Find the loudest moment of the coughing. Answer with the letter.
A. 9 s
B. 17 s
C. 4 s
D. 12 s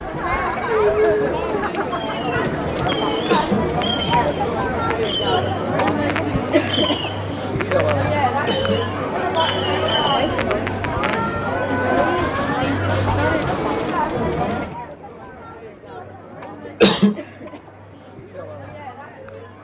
B.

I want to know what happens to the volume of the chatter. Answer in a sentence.
The volume of the chatter goes down.